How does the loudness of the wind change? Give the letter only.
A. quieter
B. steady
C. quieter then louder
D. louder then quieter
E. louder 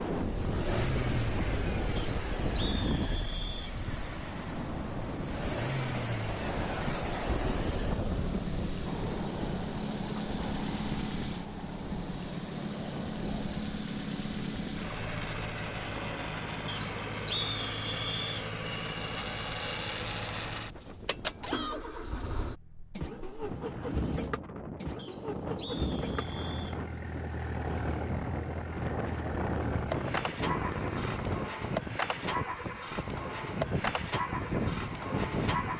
C.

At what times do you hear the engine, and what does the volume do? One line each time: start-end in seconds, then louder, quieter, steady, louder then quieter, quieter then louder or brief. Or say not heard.
0.0-35.7 steady.